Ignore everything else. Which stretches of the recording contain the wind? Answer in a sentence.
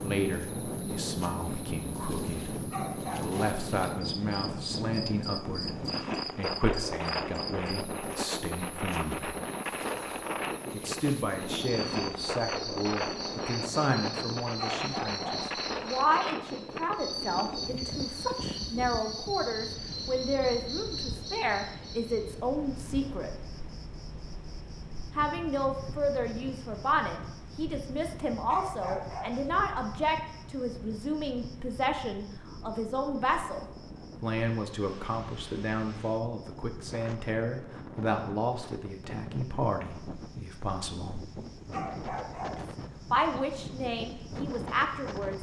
The wind can be heard from 0.0 to 45.3 s.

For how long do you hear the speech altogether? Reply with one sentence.
You can hear the speech for 41 seconds altogether.